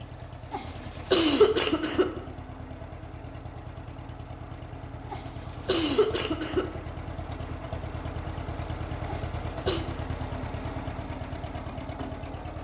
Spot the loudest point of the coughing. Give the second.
1 s.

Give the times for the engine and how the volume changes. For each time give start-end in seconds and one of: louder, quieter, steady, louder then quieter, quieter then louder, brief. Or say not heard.
0.0-12.5 louder.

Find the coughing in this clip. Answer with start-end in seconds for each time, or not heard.
0.5-2.0, 5.1-6.7, 9.1-9.8.